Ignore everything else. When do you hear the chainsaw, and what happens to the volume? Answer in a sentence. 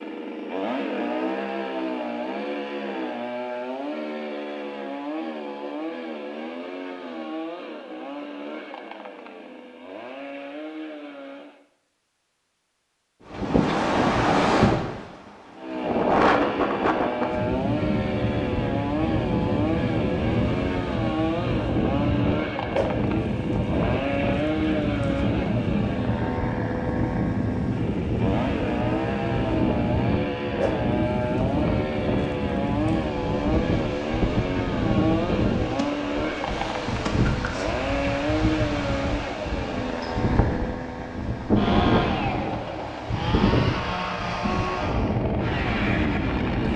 The chainsaw can be heard from 0.0 to 11.6 s, getting quieter; and from 15.6 to 46.7 s, at a steady volume.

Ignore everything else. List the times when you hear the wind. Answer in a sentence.
The wind can be heard from 13.3 to 46.7 s.